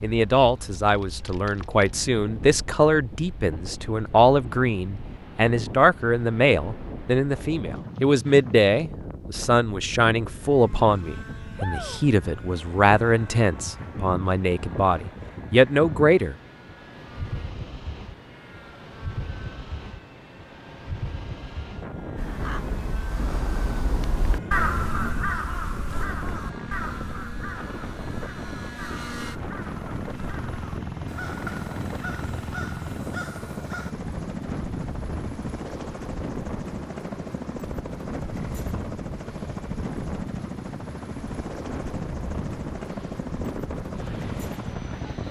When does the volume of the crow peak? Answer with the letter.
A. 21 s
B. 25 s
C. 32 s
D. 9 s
B.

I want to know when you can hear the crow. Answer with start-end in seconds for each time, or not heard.
22.1-34.0.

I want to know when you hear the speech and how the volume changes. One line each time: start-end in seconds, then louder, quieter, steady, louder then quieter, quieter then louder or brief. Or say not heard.
0.0-16.4 steady.